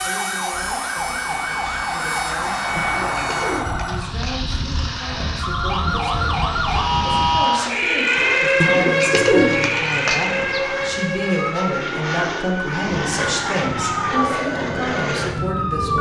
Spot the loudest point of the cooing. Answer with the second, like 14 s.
9 s.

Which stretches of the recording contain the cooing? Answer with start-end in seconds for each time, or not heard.
2.8-4.5, 8.6-10.6.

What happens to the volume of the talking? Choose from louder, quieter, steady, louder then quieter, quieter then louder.
louder.